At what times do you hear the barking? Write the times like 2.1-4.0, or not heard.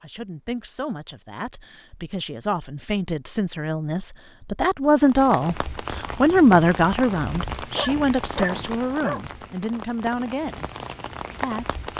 7.5-9.2.